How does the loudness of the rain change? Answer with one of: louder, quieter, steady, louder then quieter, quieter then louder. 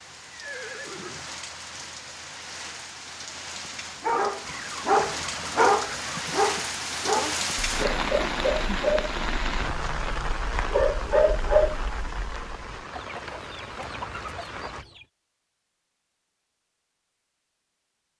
louder then quieter.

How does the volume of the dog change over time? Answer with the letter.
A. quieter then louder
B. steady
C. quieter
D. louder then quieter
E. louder
A.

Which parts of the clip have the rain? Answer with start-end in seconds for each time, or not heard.
0.0-14.8.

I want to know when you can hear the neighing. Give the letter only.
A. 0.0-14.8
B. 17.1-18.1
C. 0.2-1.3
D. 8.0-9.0
C.